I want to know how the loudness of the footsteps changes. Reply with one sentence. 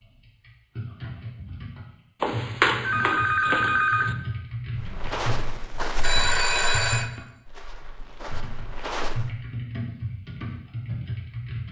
The loudness of the footsteps goes down, then up.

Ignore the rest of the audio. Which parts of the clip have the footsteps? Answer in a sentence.
The footsteps can be heard from 4.8 to 9.3 s.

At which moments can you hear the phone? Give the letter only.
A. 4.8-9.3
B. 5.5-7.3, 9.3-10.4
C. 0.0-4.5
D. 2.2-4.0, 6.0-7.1
D.